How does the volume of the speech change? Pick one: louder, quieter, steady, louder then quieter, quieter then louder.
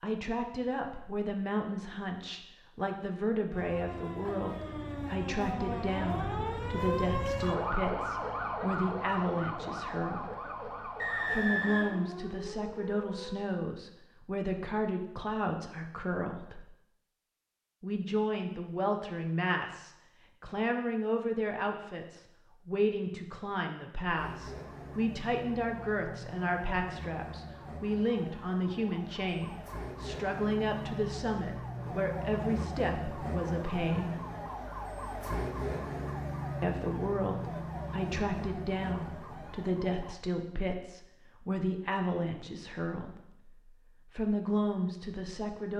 steady.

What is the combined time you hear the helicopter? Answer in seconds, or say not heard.
not heard.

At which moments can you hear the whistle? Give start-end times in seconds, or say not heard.
10.9-12.1.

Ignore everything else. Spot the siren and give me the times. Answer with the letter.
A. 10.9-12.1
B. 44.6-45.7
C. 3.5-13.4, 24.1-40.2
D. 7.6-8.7
C.